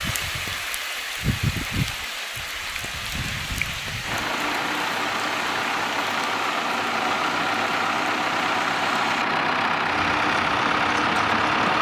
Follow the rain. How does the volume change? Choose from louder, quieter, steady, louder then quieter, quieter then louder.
quieter.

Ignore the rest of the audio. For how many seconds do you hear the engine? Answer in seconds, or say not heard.
8 s.